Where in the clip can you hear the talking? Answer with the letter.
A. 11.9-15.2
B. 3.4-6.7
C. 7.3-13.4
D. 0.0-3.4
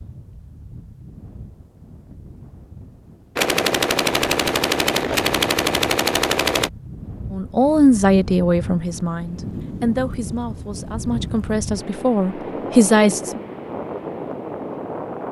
C.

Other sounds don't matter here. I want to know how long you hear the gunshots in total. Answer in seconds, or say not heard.
3 s.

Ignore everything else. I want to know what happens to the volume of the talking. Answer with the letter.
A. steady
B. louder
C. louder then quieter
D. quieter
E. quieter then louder
E.